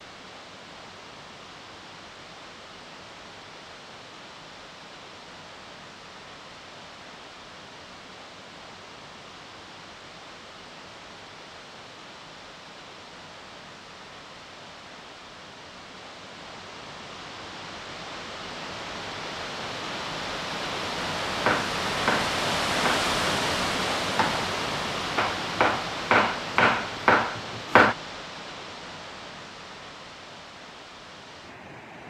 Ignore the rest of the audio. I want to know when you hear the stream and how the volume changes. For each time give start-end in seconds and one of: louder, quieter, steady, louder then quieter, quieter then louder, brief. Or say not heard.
0.0-32.0 louder then quieter.